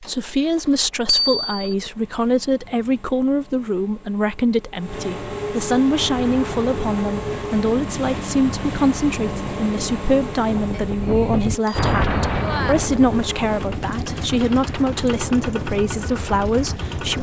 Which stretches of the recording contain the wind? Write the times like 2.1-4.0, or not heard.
5.8-17.1.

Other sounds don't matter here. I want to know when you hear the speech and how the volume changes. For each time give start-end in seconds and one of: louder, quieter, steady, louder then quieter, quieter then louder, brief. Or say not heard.
0.0-17.1 steady.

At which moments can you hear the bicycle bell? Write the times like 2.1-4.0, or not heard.
1.1-1.8, 10.7-12.8.